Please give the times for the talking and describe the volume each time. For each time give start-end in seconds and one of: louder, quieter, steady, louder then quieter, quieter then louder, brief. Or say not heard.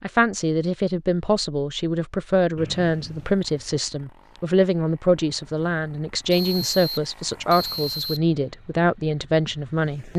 0.0-10.1 steady.